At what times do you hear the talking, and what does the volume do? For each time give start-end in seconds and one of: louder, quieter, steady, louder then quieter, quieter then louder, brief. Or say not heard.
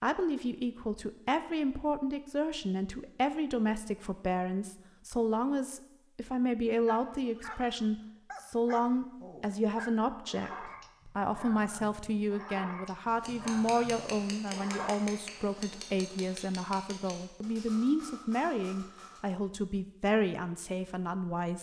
0.0-21.5 steady.